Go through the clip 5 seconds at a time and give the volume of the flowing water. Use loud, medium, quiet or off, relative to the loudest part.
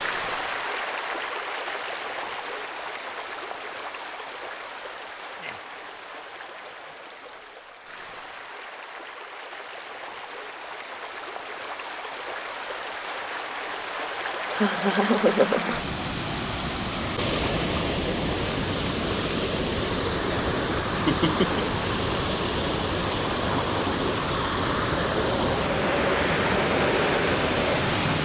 medium, quiet, medium, loud, loud, loud.